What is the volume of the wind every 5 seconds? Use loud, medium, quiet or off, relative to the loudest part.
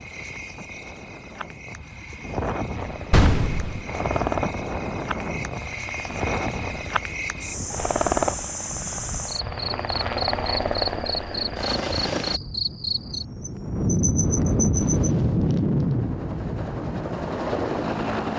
medium, medium, loud, loud.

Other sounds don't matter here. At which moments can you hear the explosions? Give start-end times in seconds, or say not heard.
3.1-3.9.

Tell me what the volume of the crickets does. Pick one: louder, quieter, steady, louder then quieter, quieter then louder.
louder.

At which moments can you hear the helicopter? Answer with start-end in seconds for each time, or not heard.
2.7-12.4, 14.7-18.3.